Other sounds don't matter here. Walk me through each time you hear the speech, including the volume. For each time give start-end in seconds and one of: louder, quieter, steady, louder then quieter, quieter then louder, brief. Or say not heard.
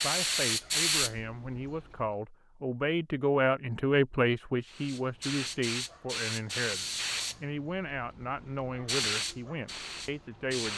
0.0-10.7 louder then quieter.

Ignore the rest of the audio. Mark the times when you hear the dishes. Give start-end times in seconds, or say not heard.
not heard.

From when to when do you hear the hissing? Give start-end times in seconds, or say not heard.
0.0-1.5, 4.7-10.7.